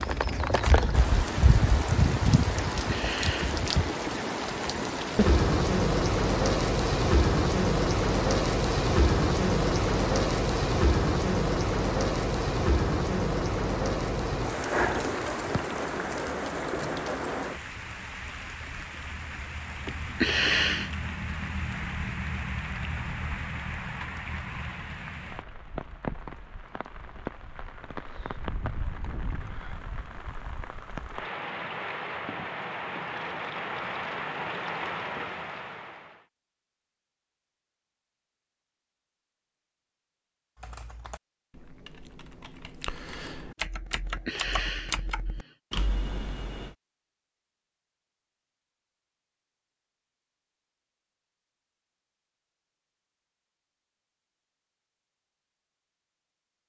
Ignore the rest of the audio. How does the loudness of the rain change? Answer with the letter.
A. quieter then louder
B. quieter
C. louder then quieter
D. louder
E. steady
B.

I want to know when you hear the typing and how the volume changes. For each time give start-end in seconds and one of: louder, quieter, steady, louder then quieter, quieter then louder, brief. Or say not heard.
40.5-46.8 louder.